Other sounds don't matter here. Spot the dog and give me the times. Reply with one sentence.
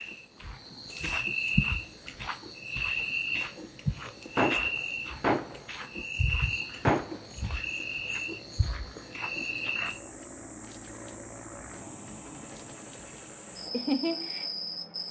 You can't hear the dog here.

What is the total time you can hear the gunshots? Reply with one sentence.
You can hear the gunshots for 2 seconds altogether.